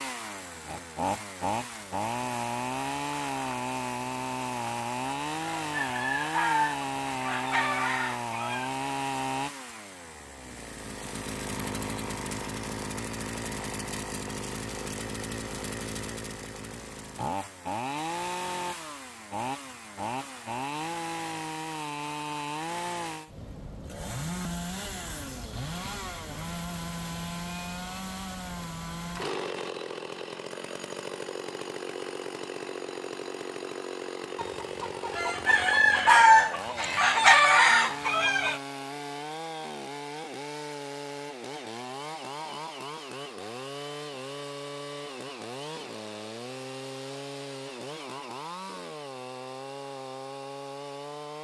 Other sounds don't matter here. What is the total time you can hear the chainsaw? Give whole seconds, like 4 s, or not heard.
51 s.